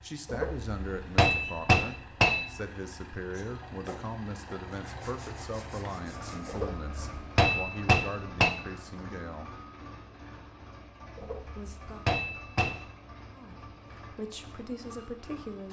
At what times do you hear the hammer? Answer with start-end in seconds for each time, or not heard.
0.2-2.5, 6.5-8.6, 11.2-12.8.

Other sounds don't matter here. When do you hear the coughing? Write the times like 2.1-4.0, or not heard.
not heard.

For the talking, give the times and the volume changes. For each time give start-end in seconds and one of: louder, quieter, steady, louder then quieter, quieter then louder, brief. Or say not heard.
0.0-9.6 steady
11.6-12.1 brief
13.3-15.6 brief.